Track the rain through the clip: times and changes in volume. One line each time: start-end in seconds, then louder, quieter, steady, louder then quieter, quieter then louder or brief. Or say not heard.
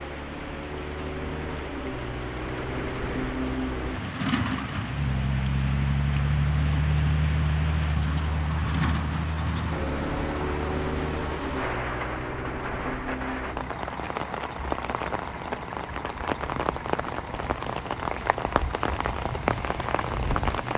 0.0-20.7 louder.